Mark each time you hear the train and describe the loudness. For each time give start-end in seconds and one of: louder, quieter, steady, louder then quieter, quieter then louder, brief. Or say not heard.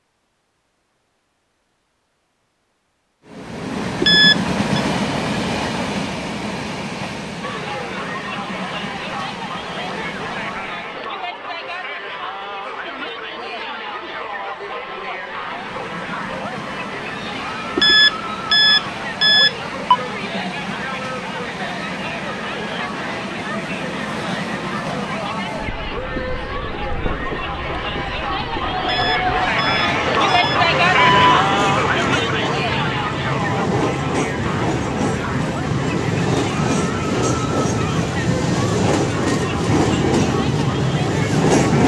3.2-11.1 quieter
15.2-41.8 louder.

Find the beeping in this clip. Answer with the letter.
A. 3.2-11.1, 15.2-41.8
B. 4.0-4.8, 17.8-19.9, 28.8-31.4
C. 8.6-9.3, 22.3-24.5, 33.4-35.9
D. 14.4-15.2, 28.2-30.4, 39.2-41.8
B.